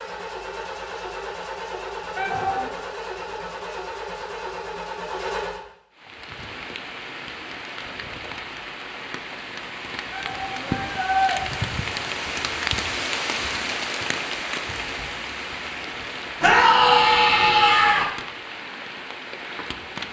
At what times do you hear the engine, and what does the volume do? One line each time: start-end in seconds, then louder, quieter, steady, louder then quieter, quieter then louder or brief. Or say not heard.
0.0-5.6 steady.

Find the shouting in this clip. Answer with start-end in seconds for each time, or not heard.
2.1-2.8, 10.1-11.4, 16.4-18.1.